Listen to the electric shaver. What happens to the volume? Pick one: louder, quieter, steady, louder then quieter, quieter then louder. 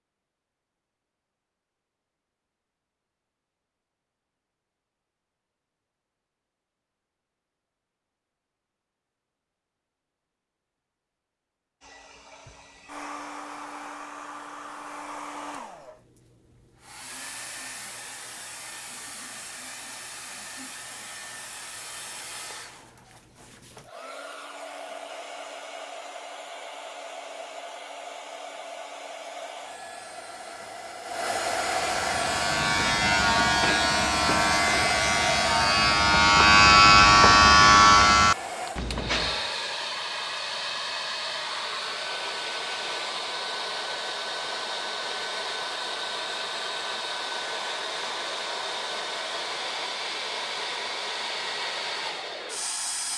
louder.